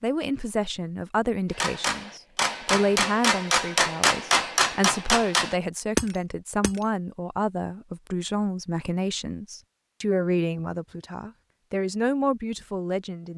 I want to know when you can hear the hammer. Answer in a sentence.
The hammer can be heard from 1.5 to 6.8 s.